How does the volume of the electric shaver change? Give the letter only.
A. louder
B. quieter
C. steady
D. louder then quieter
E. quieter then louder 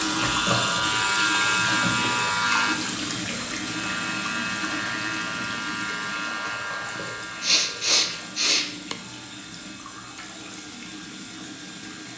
B.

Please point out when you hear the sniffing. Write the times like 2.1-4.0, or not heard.
7.0-8.9.